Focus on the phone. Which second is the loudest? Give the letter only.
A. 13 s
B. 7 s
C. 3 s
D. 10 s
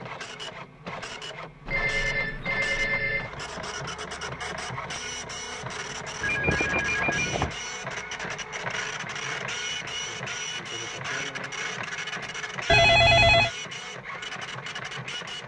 A.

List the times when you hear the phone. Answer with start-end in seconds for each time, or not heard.
1.6-3.3, 6.2-7.5, 12.7-13.5.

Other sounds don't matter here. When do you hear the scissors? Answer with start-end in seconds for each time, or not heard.
not heard.